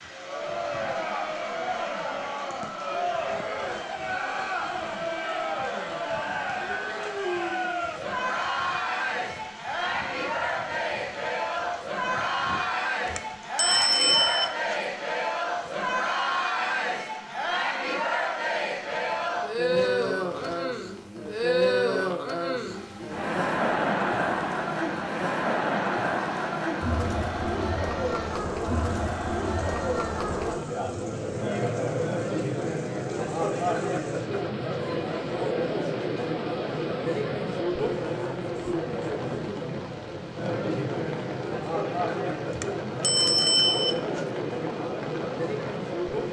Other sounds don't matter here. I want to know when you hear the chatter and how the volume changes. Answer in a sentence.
The chatter can be heard from 0.1 to 46.2 s, at a steady volume.